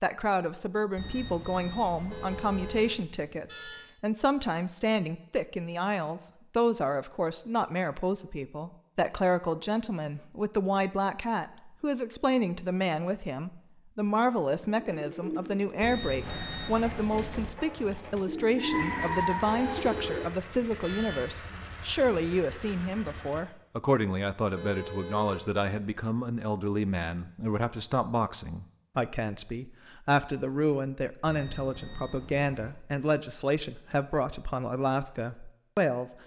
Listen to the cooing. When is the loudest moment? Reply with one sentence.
The volume of the cooing peaks at 19 seconds.